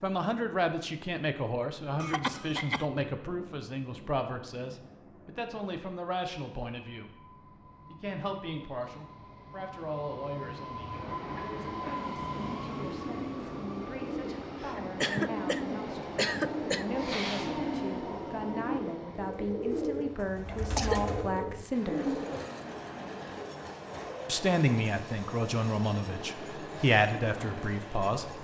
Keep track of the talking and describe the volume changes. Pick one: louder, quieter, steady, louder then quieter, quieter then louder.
quieter then louder.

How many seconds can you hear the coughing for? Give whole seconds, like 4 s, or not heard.
4 s.